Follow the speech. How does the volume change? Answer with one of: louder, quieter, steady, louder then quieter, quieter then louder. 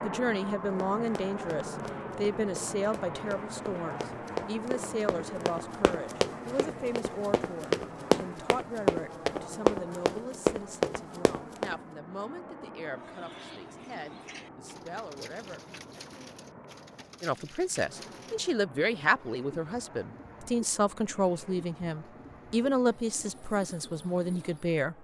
quieter then louder.